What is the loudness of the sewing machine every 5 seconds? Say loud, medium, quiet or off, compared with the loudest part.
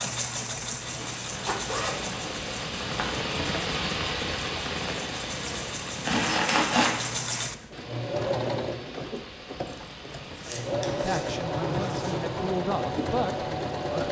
medium, loud, loud.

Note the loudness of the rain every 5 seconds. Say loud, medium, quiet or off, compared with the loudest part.
loud, medium, medium.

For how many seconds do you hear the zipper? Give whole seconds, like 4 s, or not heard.
5 s.